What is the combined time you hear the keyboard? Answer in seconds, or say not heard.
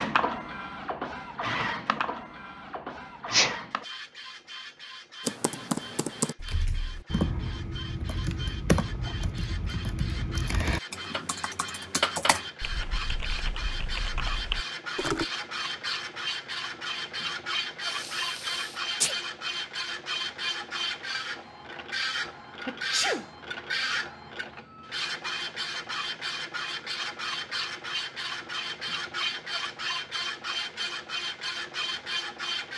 10 s.